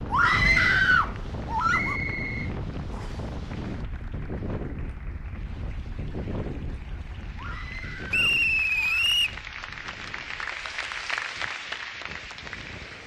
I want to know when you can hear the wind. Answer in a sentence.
You can hear the wind from 0.0 to 13.0 s.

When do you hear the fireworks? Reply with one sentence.
You can't hear the fireworks here.